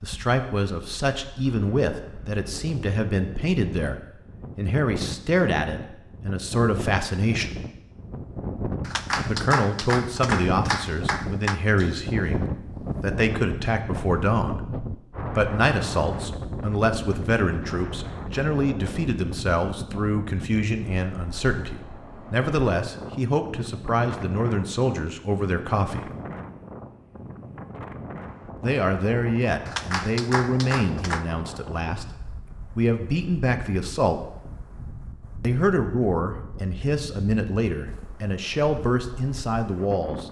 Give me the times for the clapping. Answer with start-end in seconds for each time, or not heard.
8.8-11.6, 29.6-31.2.